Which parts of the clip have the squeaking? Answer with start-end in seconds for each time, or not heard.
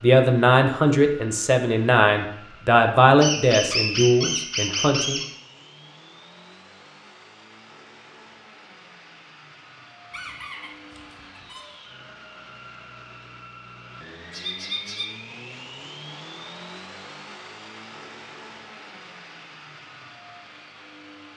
3.2-5.2, 10.1-11.6, 14.3-15.1.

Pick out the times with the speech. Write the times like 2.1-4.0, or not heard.
0.0-5.2.